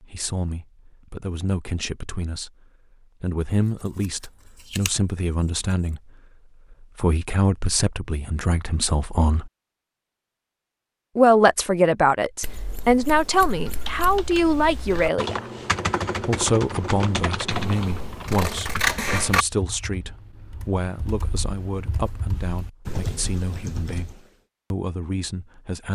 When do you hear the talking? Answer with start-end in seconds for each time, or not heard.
0.0-2.5, 3.2-6.1, 6.7-9.5, 11.2-15.4, 16.2-24.1, 24.7-25.9.